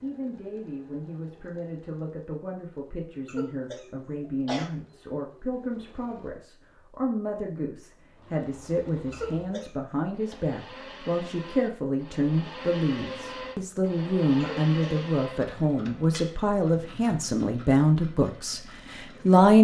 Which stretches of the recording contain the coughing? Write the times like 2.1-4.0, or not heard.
3.2-4.7, 9.1-10.3, 14.4-15.0.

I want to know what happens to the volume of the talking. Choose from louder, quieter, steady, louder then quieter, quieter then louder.
louder.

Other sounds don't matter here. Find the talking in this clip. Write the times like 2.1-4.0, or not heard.
0.0-19.5.